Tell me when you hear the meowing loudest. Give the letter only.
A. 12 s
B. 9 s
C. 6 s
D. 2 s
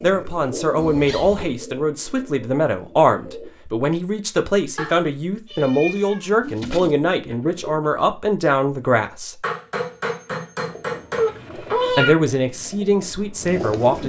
A.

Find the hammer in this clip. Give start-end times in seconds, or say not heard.
9.4-11.3.